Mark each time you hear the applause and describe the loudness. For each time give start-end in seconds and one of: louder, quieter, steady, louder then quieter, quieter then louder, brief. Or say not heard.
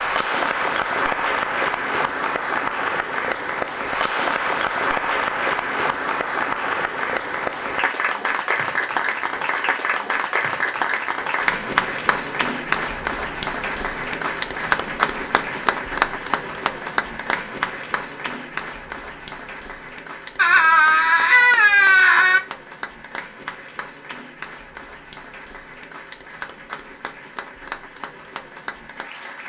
0.0-29.4 quieter.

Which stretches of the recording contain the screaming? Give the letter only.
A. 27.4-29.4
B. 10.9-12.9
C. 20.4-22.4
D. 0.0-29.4
C.